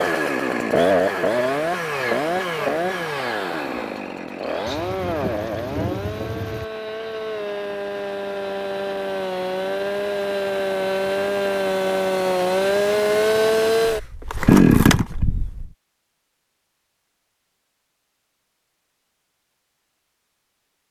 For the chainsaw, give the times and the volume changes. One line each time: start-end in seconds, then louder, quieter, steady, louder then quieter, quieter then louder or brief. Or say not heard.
0.0-15.7 quieter then louder.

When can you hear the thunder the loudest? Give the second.
6 s.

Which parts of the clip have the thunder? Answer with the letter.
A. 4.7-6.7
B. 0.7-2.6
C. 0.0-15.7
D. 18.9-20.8
A.